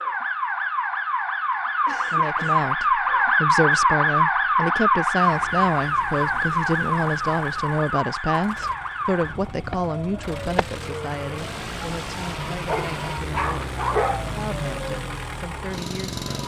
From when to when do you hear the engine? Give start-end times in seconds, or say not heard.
5.2-16.4.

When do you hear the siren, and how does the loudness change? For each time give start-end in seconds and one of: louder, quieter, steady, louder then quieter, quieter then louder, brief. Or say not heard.
0.0-16.4 quieter.